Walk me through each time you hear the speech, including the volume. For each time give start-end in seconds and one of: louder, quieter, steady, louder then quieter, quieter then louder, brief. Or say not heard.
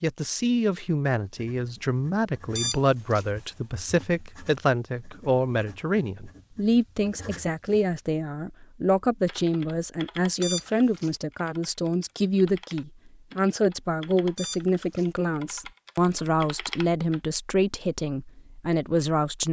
0.0-19.4 steady.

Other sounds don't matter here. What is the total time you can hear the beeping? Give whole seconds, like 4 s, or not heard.
2 s.